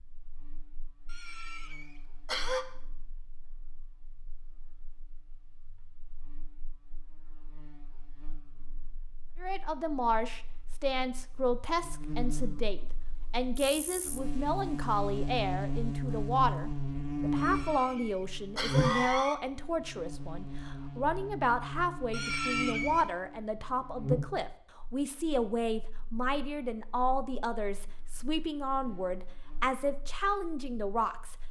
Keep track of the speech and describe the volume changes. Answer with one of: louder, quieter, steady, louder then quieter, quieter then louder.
steady.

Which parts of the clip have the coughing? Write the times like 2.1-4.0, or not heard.
1.1-2.6, 17.4-19.4, 22.1-23.1.